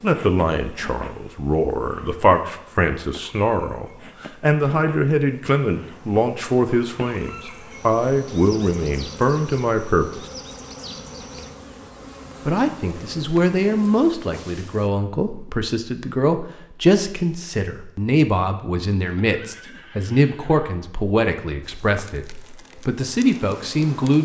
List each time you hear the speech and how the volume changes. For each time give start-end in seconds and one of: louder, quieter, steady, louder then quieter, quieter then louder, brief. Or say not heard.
0.0-10.2 steady
12.4-24.2 steady.